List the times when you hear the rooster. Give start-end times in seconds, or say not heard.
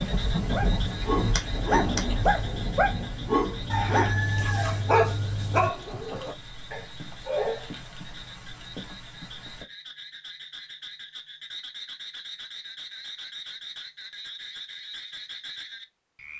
3.7-5.7.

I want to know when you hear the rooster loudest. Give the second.
4 s.